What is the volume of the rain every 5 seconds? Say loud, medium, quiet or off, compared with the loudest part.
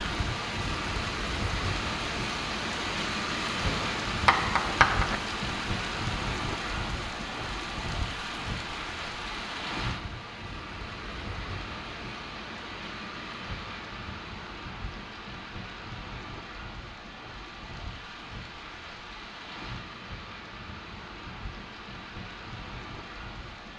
loud, loud, medium, medium, medium.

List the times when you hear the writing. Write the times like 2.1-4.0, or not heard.
3.6-5.2.